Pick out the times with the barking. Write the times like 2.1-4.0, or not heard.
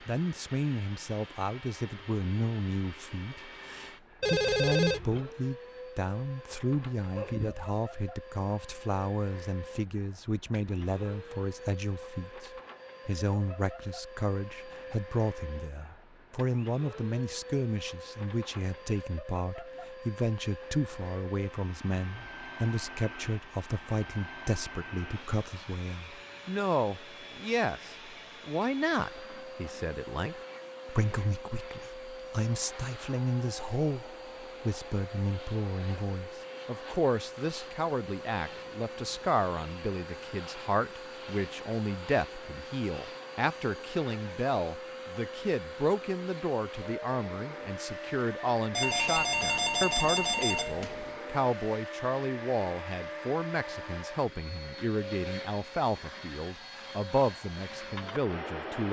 7.0-7.7.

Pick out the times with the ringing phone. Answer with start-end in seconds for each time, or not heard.
4.2-5.2, 48.7-51.1.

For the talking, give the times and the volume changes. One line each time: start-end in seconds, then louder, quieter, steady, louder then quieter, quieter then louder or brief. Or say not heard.
0.1-58.8 steady.